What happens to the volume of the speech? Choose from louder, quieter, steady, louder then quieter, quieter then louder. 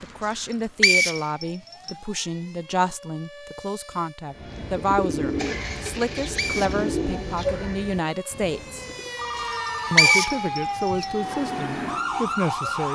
steady.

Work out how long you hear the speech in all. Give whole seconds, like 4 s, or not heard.
12 s.